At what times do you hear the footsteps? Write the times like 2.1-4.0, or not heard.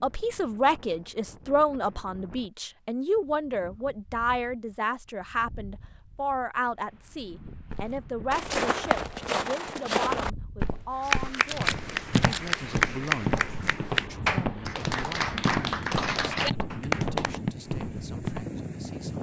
7.7-18.4.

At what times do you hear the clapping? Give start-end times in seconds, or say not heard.
11.0-17.4.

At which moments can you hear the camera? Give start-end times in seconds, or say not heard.
11.4-12.5.